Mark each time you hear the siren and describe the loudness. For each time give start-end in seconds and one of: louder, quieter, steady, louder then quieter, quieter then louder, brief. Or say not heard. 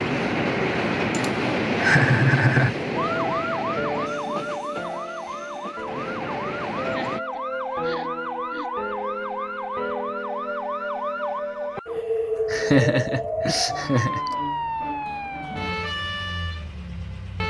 3.0-17.4 steady.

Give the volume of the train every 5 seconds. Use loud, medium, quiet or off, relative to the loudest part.
loud, medium, off, off.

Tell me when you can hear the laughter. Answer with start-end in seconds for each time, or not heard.
1.1-2.8, 6.8-8.7, 12.5-14.3.